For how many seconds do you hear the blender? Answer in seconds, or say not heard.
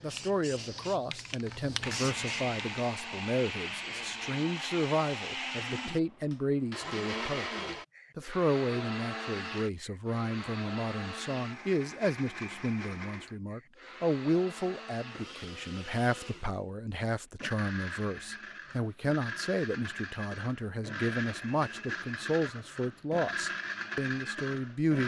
23 s.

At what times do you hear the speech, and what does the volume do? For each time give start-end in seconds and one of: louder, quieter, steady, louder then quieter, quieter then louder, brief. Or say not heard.
0.0-25.0 steady.